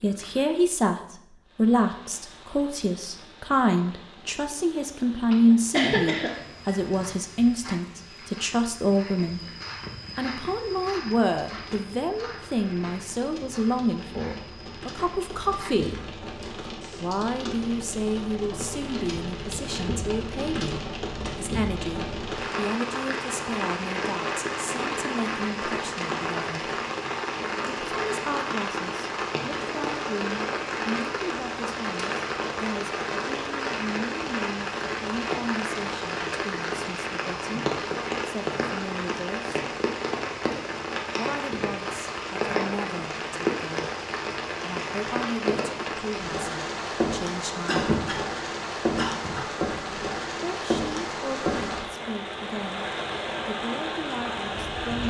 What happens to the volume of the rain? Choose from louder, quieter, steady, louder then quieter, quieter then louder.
louder.